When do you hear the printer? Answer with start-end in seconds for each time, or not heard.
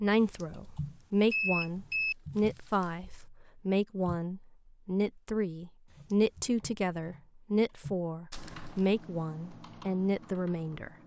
not heard.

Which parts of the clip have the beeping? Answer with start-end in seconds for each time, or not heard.
0.2-2.1, 5.8-6.5.